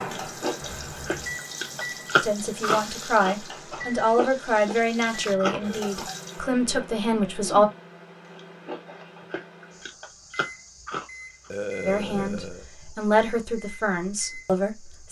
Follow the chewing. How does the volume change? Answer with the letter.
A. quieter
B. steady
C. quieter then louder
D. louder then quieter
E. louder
A.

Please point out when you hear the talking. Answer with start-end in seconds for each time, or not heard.
2.2-7.7, 11.8-15.0.